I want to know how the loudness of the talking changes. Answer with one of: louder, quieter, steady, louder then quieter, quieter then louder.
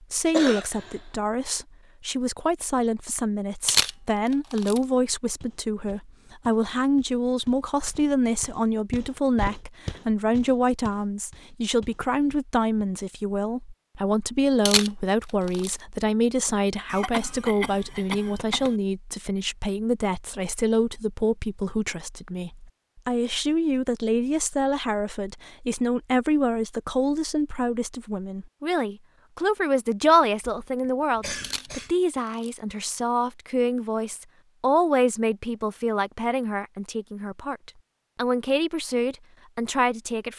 steady.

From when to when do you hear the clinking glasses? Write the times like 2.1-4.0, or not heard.
not heard.